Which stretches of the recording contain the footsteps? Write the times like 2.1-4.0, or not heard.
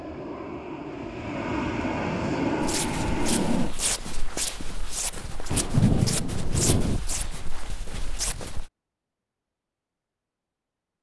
2.6-8.7.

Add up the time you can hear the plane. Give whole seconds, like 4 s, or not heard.
4 s.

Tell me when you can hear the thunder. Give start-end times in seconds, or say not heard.
5.5-7.0.